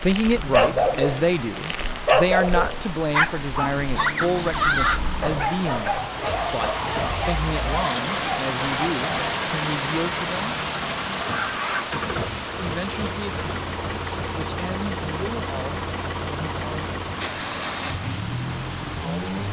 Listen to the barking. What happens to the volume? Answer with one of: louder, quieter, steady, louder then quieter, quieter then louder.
quieter.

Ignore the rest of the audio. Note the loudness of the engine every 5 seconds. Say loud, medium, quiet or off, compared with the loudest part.
medium, loud, loud, loud.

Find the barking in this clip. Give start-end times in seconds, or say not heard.
0.0-9.4.